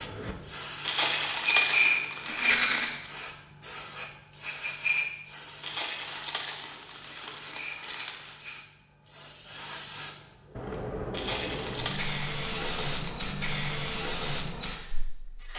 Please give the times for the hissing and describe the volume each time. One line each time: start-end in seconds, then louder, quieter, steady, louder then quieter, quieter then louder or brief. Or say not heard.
0.0-15.5 quieter then louder.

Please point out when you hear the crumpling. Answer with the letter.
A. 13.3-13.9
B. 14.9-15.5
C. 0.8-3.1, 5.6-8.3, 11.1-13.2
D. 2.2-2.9
C.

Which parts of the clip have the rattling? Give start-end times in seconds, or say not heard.
2.2-2.9.